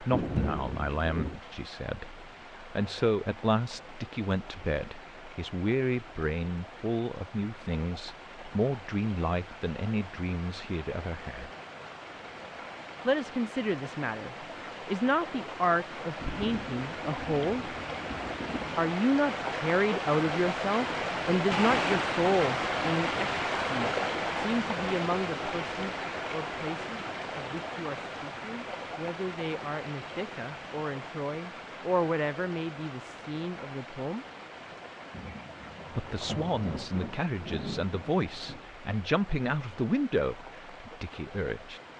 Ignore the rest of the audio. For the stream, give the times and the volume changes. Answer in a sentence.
The stream can be heard from 0.0 to 41.9 s, getting louder then quieter.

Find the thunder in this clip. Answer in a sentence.
The thunder can be heard from 0.1 to 1.4 s, from 16.1 to 18.9 s and from 35.1 to 38.6 s.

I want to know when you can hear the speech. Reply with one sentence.
You can hear the speech from 0.0 to 11.5 s, from 13.1 to 17.7 s, from 18.8 to 34.2 s and from 36.0 to 41.8 s.